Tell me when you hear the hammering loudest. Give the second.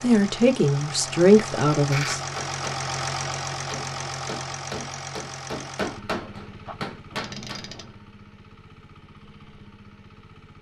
6 s.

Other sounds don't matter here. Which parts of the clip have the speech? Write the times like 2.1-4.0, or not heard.
0.0-2.2.